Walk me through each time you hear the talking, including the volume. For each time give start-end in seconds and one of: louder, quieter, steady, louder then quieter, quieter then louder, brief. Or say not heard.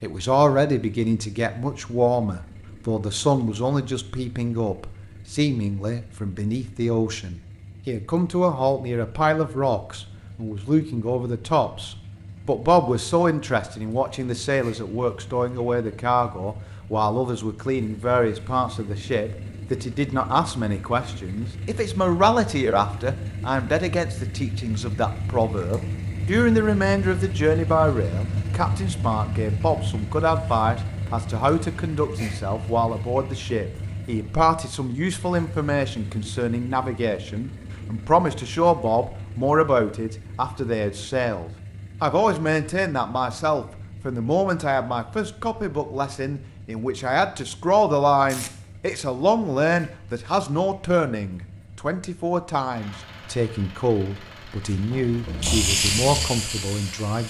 0.0-57.2 steady.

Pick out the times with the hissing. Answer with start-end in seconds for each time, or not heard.
54.8-57.2.